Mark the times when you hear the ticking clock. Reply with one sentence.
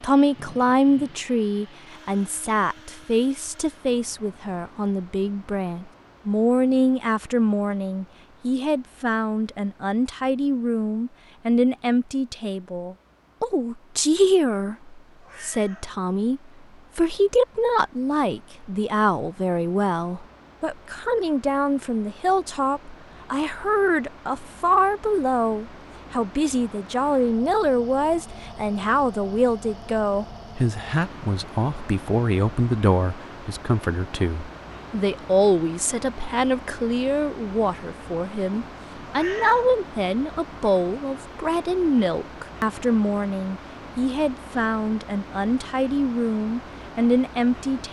The ticking clock can't be heard in this clip.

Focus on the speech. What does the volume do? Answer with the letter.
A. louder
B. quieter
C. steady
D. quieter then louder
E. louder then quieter
C.